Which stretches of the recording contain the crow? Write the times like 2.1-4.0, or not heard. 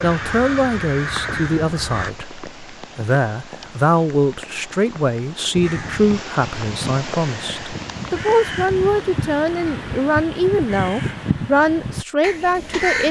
0.0-2.1, 5.5-13.0.